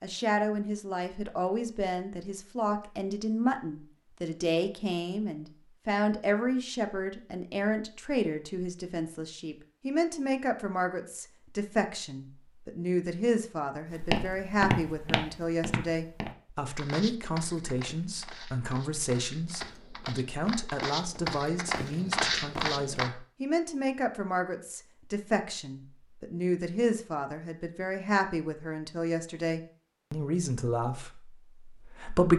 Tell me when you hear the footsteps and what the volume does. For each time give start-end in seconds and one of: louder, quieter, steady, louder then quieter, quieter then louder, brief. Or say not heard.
13.9-23.1 quieter then louder.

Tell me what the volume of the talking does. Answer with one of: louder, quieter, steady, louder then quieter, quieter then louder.
steady.